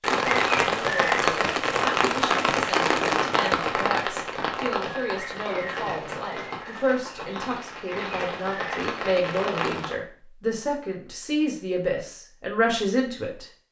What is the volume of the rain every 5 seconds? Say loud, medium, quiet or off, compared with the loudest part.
loud, medium, off.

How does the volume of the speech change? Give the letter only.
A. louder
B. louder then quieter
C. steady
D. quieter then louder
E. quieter
A.